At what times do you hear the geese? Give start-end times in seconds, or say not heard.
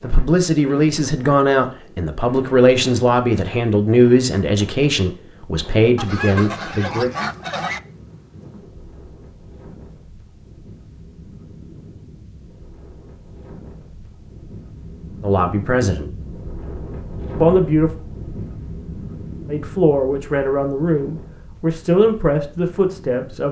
6.0-7.8.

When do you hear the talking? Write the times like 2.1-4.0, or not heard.
0.0-7.1, 15.2-16.1, 17.4-17.9, 19.4-23.4.